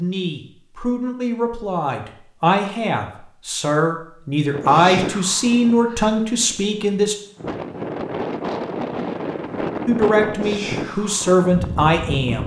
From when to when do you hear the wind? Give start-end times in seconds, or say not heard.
4.5-12.4.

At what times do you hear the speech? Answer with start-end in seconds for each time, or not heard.
0.0-7.2, 9.8-12.4.